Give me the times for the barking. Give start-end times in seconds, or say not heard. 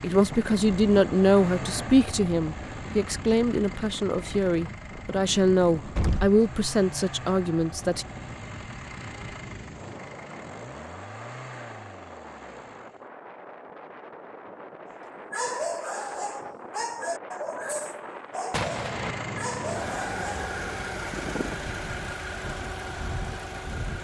14.8-20.4.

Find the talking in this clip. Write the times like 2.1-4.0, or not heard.
0.0-8.1.